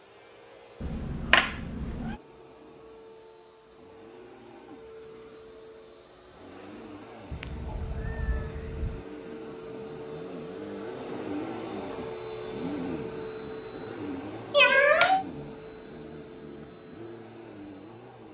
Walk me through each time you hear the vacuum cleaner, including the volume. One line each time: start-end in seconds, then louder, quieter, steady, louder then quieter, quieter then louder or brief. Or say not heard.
0.0-18.2 louder then quieter.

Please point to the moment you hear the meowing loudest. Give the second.
15 s.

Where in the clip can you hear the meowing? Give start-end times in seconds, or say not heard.
0.8-2.1, 7.3-9.1, 14.5-15.2.